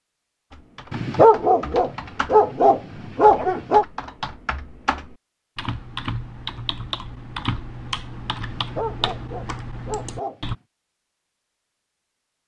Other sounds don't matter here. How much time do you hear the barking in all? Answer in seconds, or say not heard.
5 s.